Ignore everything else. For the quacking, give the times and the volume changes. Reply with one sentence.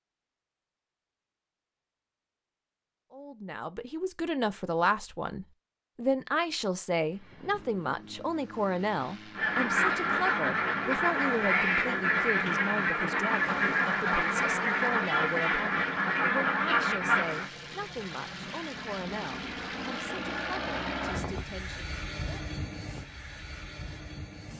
You can hear the quacking from 9.3 to 17.5 s, at a steady volume.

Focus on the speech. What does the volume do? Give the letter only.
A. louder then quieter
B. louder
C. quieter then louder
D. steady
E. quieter
E.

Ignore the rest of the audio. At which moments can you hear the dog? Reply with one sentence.
The dog can't be heard in this clip.